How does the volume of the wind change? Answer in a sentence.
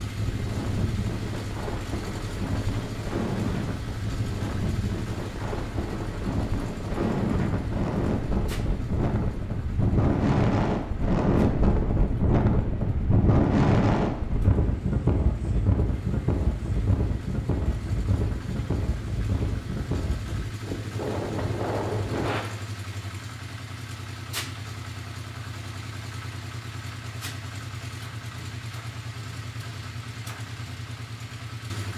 The volume of the wind goes up, then down.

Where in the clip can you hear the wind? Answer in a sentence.
You can hear the wind from 0.0 to 22.4 s.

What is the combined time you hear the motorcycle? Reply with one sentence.
The motorcycle can be heard for 32 seconds in total.